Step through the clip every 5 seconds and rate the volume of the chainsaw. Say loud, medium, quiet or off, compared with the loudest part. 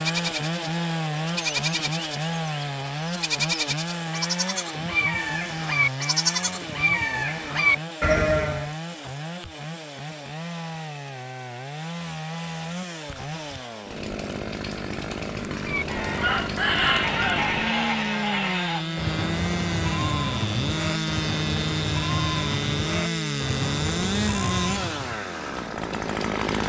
loud, medium, medium, loud, loud, loud.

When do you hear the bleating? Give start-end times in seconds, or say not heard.
0.0-8.7, 15.6-25.2.